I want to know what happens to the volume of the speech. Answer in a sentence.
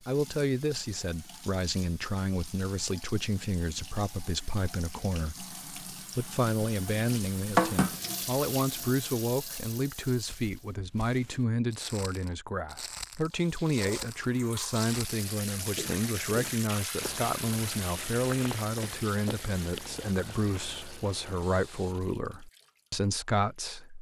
The volume of the speech stays about the same.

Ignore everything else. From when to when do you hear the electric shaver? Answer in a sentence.
The electric shaver can't be heard in this clip.